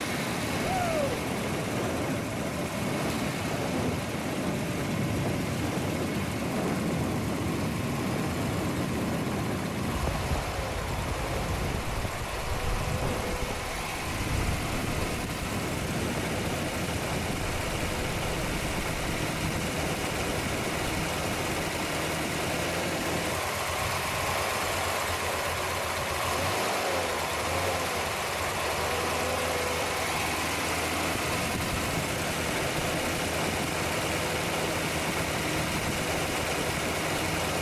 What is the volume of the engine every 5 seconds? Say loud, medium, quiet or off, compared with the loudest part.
medium, medium, medium, loud, loud, loud, loud, loud.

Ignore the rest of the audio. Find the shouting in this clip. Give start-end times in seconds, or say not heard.
0.6-1.2.